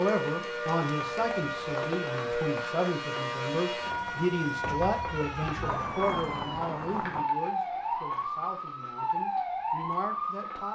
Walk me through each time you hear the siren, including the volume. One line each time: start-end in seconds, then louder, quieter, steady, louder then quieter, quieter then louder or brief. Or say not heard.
0.0-10.7 steady.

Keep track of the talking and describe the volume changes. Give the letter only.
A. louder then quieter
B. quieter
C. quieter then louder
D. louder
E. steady
B.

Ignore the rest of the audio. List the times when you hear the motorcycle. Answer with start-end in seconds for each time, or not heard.
not heard.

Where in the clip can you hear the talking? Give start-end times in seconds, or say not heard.
0.0-10.7.